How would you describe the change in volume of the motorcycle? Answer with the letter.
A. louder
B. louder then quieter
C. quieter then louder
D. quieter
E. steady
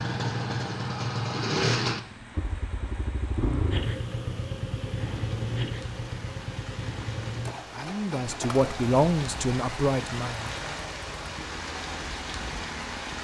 D.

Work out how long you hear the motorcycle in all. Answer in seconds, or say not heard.
13 s.